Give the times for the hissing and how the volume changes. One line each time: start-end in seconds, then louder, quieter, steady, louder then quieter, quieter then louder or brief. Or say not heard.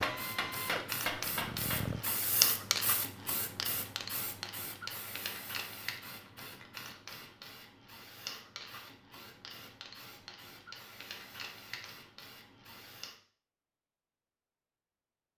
0.0-13.2 quieter.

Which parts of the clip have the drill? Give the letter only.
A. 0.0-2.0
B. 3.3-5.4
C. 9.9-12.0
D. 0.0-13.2
A.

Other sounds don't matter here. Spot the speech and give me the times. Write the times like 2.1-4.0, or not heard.
not heard.